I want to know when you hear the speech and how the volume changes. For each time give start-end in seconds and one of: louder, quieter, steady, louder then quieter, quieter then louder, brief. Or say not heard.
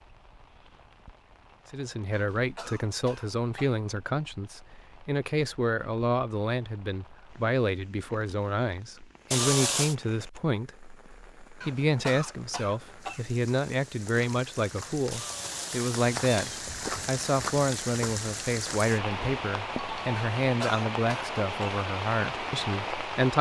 1.7-23.3 steady.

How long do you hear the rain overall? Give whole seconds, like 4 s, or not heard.
23 s.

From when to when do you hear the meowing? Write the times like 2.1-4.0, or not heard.
9.3-9.9, 15.1-16.6.